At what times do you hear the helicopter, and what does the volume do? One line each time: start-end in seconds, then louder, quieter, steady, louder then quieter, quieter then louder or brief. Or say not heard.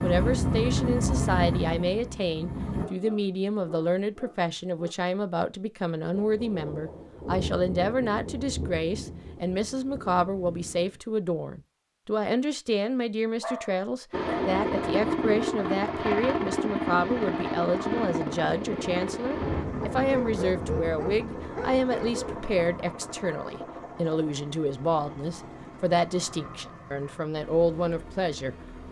0.0-2.9 brief
14.1-28.8 quieter.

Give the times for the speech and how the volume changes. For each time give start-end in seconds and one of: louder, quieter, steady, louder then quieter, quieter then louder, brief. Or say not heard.
0.0-28.6 steady.